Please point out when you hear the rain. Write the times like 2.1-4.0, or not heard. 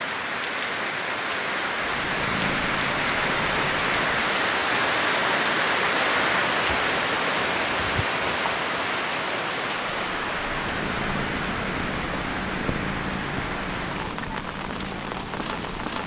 0.0-16.0.